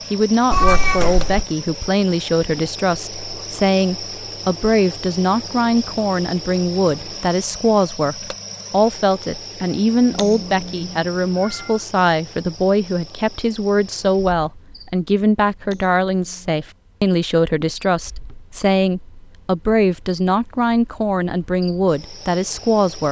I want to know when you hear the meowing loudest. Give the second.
1 s.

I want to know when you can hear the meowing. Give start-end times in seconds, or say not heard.
0.5-1.4, 10.1-11.7, 15.7-16.6.